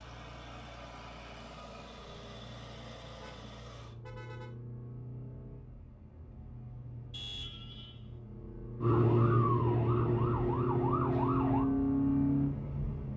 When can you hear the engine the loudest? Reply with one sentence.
The volume of the engine peaks at 12 seconds.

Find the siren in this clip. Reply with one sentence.
The siren can be heard from 8.8 to 11.7 s.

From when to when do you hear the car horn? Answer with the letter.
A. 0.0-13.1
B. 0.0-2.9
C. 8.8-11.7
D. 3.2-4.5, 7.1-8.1
D.